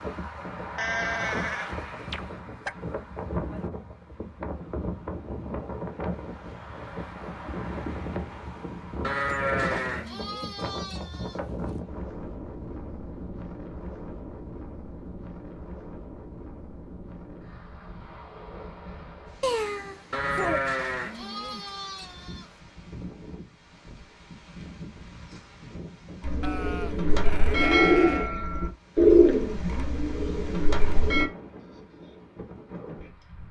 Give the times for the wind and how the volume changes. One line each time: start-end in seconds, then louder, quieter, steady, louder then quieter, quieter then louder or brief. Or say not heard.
0.0-33.4 quieter.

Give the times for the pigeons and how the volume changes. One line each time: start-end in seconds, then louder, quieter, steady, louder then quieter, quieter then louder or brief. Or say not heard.
26.2-31.3 louder then quieter.